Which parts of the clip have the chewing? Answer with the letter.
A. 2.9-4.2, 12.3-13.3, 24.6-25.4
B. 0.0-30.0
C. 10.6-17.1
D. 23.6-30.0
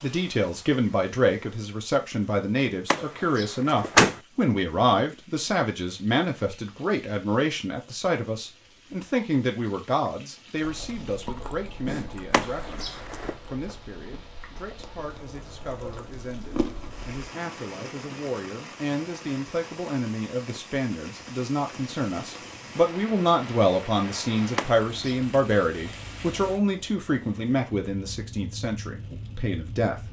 C.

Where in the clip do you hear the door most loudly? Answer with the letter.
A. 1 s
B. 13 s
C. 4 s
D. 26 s
C.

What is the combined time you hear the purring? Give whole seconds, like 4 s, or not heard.
not heard.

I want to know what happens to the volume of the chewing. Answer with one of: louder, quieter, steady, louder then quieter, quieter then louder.
quieter then louder.